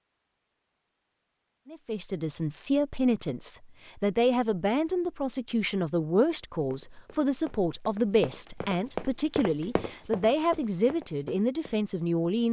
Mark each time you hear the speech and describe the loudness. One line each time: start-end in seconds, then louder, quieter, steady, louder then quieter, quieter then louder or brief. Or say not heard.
1.6-12.4 steady.